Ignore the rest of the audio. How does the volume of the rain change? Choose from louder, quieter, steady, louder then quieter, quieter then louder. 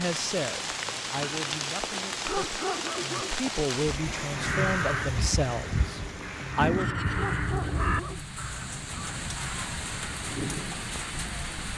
quieter then louder.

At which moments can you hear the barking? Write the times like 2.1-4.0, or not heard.
2.1-3.4, 7.0-8.3.